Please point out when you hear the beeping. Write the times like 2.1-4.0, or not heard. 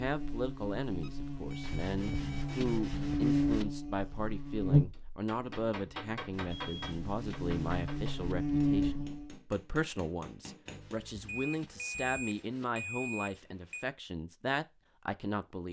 1.0-2.6, 6.5-7.6, 11.2-13.8.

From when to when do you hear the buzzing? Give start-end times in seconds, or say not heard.
0.0-9.4.